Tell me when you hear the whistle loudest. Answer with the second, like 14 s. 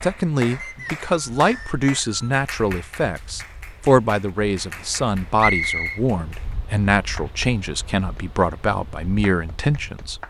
6 s.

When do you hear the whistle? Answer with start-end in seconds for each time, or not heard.
0.6-2.4, 5.3-6.0.